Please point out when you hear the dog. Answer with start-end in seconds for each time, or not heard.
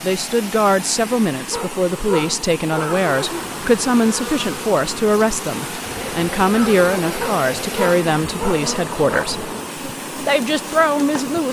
1.5-3.0, 7.2-9.4.